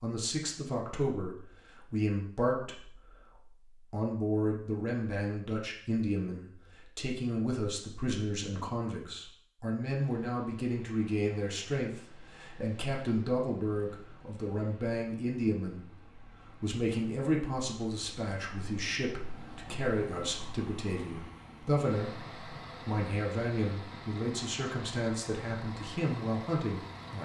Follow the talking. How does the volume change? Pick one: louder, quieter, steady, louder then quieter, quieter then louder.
steady.